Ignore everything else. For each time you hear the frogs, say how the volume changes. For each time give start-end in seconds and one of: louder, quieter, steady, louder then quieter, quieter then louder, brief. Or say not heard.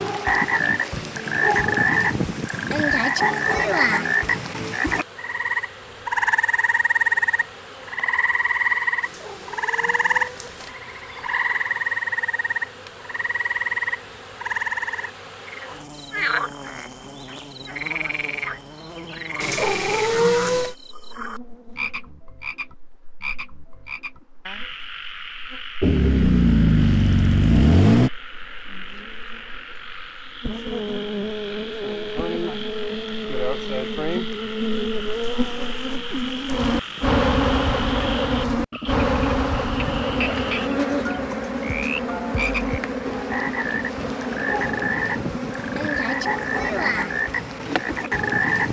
0.0-48.6 quieter then louder.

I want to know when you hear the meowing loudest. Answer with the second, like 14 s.
20 s.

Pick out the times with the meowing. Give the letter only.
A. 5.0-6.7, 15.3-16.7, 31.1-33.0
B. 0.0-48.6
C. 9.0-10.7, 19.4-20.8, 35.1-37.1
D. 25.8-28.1
C.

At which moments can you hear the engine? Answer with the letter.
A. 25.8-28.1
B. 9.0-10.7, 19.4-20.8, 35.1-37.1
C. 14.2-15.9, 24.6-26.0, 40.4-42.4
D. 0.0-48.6
A.